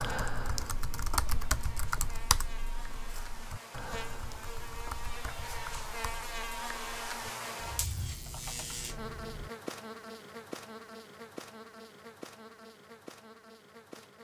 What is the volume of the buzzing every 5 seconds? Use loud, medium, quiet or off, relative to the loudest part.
medium, loud, medium.